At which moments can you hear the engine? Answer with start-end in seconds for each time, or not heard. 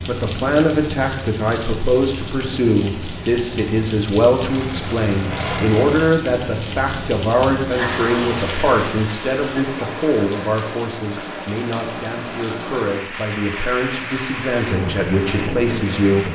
4.3-6.1.